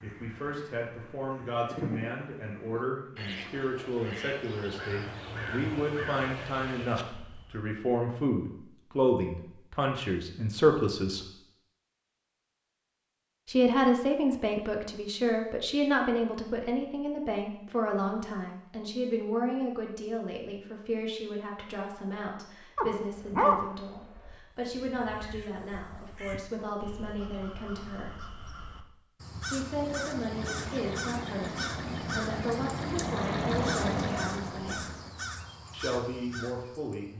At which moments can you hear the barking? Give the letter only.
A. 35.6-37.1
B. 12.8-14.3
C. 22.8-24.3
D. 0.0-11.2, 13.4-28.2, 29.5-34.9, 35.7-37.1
C.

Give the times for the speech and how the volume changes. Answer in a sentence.
The speech can be heard from 0.0 to 11.2 s, getting louder; from 13.4 to 28.2 s, getting quieter; from 29.5 to 34.9 s, at a steady volume; and briefly from 35.7 to 37.1 s.